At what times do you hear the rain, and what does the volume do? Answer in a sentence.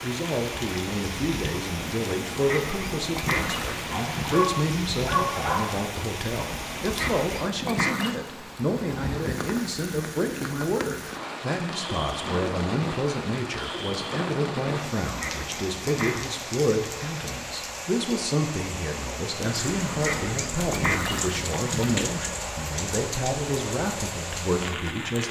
The rain can be heard from 0.0 to 25.2 s, at a steady volume.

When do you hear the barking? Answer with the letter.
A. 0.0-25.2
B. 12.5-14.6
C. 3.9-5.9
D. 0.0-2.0
C.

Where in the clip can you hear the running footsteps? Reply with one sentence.
You can't hear the running footsteps here.